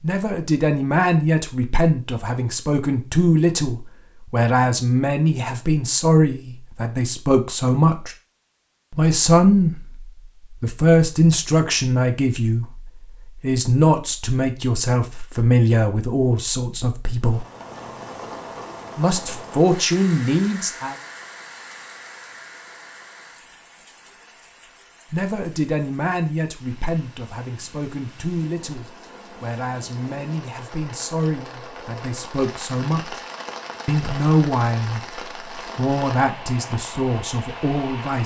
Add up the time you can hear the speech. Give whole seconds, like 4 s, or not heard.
31 s.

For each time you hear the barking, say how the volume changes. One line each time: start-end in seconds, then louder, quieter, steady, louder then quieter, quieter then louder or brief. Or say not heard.
not heard.